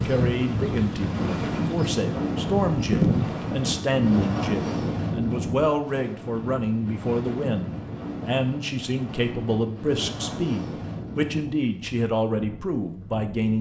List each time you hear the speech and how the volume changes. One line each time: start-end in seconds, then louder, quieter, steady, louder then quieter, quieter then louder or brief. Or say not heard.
0.1-13.5 steady.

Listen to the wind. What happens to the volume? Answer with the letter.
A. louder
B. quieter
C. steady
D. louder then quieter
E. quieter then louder
B.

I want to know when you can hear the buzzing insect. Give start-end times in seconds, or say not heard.
0.0-3.8.